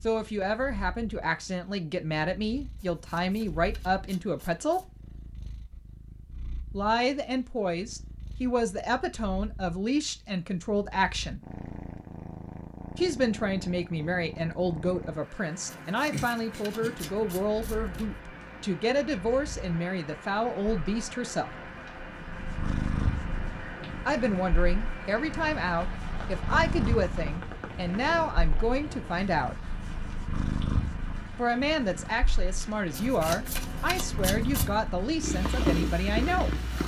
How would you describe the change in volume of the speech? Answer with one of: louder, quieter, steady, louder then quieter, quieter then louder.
steady.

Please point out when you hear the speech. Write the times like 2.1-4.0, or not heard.
0.0-4.8, 6.7-11.4, 12.9-21.5, 24.1-29.6, 31.4-36.5.